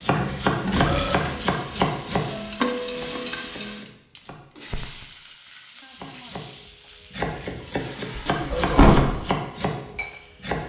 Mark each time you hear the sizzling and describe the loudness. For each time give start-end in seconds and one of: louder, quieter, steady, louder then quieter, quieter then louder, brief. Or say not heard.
0.0-10.6 louder then quieter.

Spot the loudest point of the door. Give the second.
9 s.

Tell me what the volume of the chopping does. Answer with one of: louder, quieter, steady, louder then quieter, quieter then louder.
quieter then louder.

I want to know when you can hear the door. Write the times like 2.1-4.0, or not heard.
0.1-1.6, 8.2-9.1.